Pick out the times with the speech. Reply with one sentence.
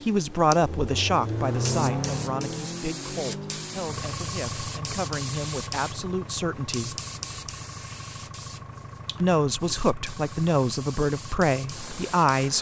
You can hear the speech from 0.1 to 7.0 s and from 9.2 to 12.5 s.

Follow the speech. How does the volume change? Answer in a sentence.
The volume of the speech goes down, then up.